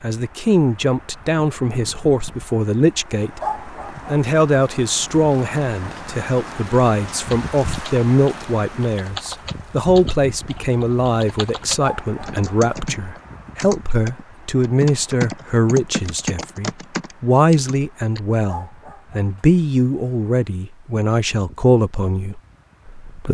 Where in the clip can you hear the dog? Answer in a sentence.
The dog can be heard from 3.4 to 4.1 s, from 11.8 to 12.6 s and from 18.4 to 19.4 s.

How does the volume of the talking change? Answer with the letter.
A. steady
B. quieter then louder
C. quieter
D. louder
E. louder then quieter
A.